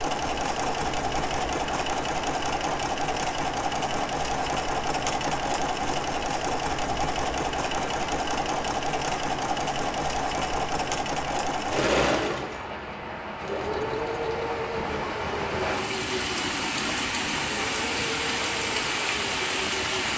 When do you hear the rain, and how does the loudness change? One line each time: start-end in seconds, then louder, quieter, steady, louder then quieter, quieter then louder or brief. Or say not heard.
0.0-20.1 louder.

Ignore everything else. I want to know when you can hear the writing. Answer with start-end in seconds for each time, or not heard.
not heard.